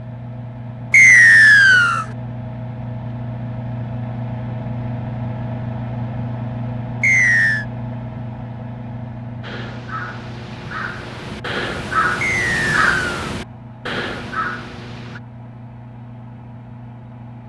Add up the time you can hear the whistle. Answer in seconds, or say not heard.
3 s.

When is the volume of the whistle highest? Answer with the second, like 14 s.
1 s.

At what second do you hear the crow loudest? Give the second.
13 s.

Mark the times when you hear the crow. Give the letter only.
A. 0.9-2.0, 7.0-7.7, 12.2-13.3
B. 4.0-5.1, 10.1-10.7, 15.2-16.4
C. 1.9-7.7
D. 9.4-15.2
D.